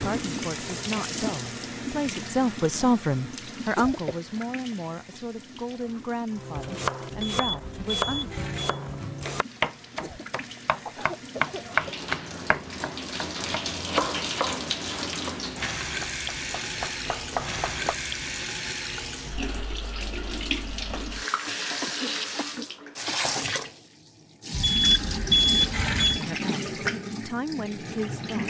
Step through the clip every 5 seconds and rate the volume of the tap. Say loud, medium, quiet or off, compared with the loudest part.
loud, quiet, loud, loud, loud, loud.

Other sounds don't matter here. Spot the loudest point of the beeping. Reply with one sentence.
The loudest moment of the beeping is at 25 seconds.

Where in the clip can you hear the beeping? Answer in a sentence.
You can hear the beeping from 7.2 to 8.8 s and from 24.5 to 26.2 s.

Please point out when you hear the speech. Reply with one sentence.
You can hear the speech from 0.0 to 8.3 s and from 26.1 to 28.4 s.